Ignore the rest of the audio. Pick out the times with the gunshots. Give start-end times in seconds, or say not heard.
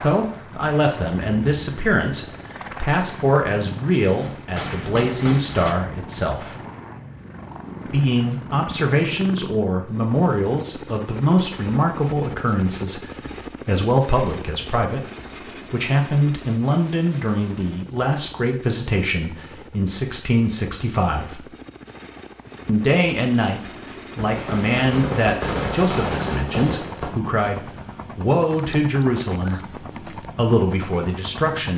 4.0-5.7, 24.1-27.1.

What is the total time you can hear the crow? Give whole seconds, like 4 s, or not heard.
not heard.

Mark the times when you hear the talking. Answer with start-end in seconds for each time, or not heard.
0.0-6.5, 7.8-21.4, 22.6-31.7.